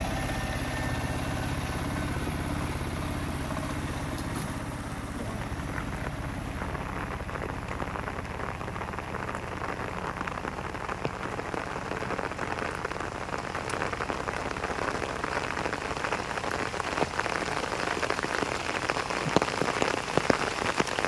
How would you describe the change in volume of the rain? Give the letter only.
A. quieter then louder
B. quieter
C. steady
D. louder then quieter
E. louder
E.